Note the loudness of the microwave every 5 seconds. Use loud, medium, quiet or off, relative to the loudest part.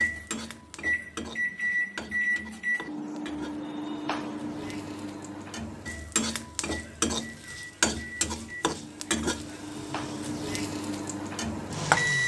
loud, medium, loud.